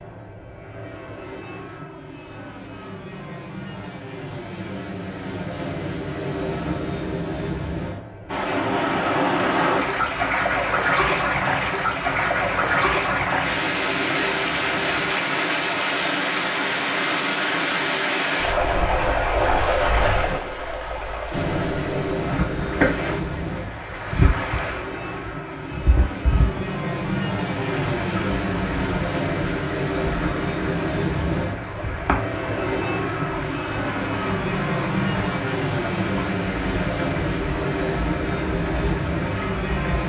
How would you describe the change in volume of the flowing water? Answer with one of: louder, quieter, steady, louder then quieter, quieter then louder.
quieter.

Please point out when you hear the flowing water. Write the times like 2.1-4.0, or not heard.
8.2-40.0.